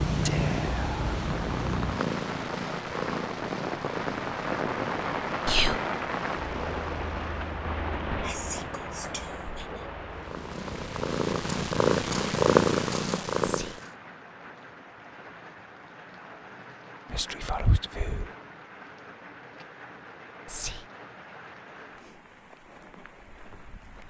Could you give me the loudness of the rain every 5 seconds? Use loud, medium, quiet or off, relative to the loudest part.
loud, loud, medium, quiet, quiet.